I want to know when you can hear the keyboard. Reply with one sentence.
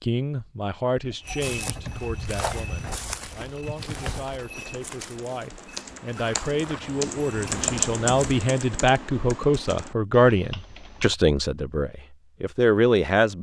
You can hear the keyboard from 1.1 to 11.2 s.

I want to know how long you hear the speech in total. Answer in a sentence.
You can hear the speech for 13 seconds altogether.